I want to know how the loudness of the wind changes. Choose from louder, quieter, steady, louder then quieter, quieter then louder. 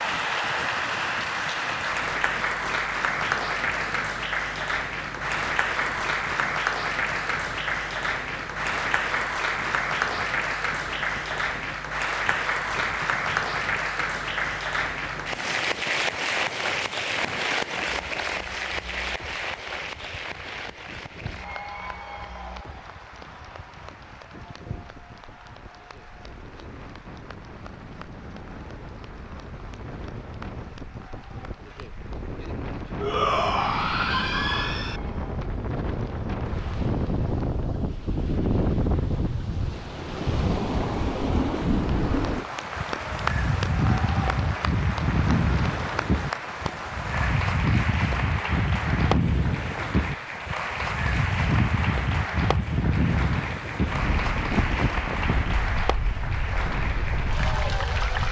louder.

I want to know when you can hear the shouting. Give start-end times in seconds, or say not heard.
33.0-35.0.